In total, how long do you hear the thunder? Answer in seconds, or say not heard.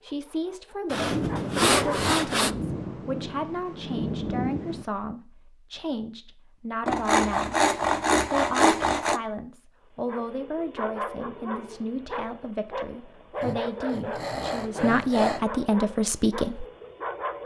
4 s.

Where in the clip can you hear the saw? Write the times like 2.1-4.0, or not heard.
0.9-2.5, 6.8-9.2, 13.4-15.4.